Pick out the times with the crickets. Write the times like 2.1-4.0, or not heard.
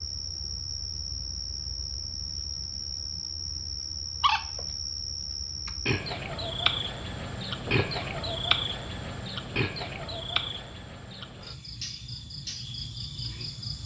0.0-13.8.